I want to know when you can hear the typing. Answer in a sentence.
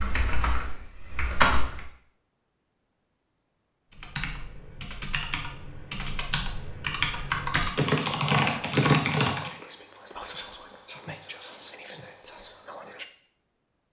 The typing can be heard from 0.0 to 1.9 s and from 3.9 to 9.5 s.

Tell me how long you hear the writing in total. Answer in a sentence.
You can't hear the writing here.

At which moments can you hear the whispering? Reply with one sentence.
You can hear the whispering from 7.8 to 13.1 s.